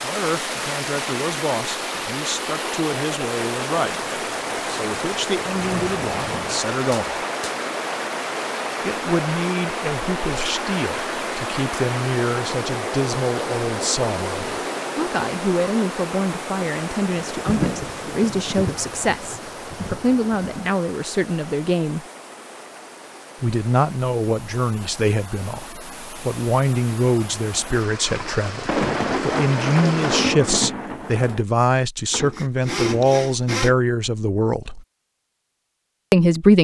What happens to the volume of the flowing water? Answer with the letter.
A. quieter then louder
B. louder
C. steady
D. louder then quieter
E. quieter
E.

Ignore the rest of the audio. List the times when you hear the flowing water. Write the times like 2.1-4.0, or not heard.
0.0-30.2.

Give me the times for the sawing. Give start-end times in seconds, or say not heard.
32.1-33.8.